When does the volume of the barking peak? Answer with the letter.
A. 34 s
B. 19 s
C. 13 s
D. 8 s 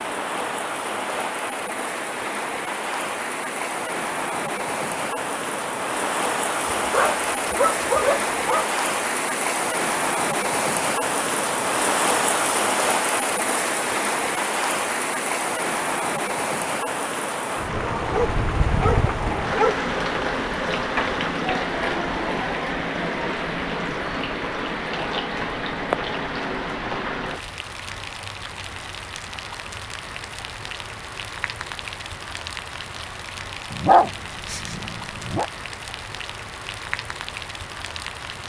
A.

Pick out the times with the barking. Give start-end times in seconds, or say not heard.
6.7-8.7, 18.1-19.9, 33.7-35.5.